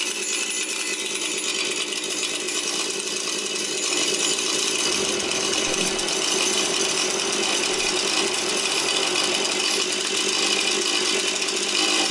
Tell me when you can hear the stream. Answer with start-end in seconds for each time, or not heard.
4.8-11.8.